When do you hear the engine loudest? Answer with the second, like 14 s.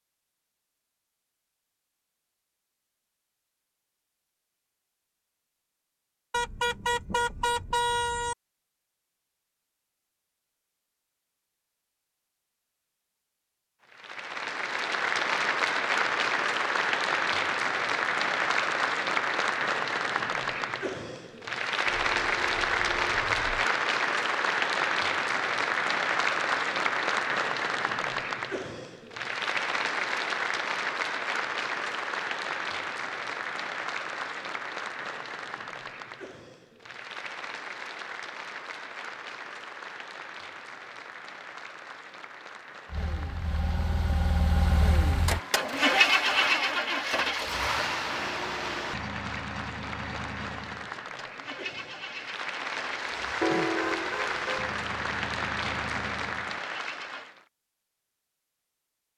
46 s.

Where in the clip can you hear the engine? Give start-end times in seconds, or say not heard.
42.9-57.3.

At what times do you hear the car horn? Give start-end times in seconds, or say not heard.
6.3-8.3, 21.9-23.6, 53.4-54.7.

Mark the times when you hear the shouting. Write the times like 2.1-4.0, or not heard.
45.9-46.8.